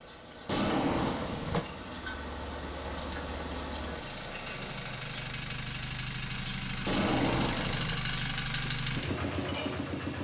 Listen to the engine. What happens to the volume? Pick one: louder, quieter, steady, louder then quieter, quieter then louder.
louder.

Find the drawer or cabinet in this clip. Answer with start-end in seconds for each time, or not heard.
0.5-1.6, 6.8-8.0.